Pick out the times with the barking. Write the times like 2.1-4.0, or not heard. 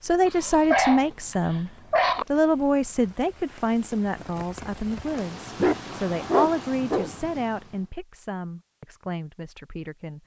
0.2-2.2, 5.5-7.1.